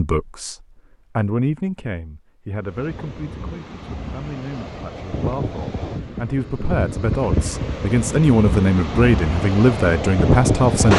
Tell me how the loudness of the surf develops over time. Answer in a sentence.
The loudness of the surf goes up.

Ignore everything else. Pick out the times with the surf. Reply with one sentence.
The surf can be heard from 2.6 to 10.9 s.